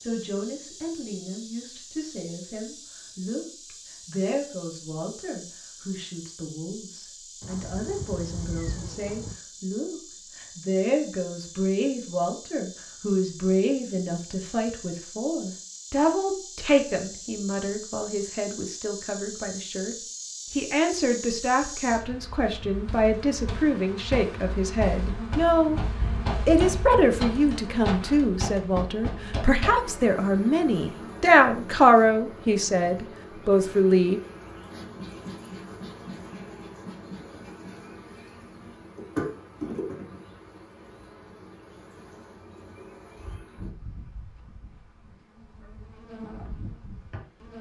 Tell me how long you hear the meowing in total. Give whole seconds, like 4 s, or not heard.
2 s.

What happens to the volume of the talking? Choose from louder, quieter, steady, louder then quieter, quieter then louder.
louder.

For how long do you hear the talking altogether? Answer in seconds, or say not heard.
34 s.